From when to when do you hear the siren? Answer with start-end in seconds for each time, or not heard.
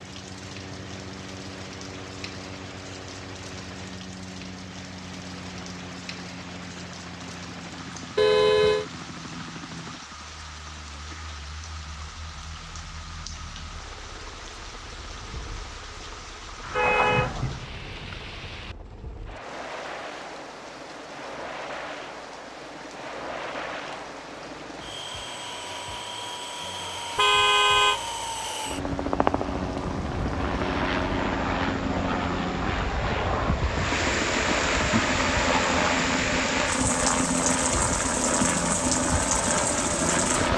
not heard.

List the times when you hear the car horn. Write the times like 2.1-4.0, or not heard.
8.2-8.8, 16.6-17.6, 27.1-28.0.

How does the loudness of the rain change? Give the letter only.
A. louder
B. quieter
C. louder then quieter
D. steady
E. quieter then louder
A.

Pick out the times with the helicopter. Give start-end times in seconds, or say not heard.
0.0-40.5.